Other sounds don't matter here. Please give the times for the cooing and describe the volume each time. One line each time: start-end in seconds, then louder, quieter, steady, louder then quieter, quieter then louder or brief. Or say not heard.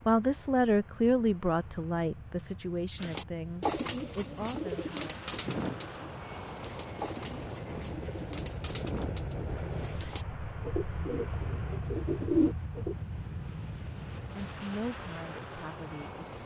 3.0-12.9 quieter then louder.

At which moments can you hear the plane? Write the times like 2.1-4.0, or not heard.
0.0-16.4.